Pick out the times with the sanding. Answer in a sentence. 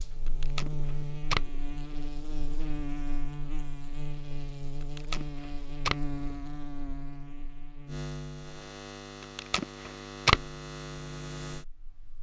The sanding can't be heard in this clip.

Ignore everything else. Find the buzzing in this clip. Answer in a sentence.
The buzzing can be heard from 0.0 to 12.1 s.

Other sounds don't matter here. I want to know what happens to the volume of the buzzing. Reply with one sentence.
The volume of the buzzing stays about the same.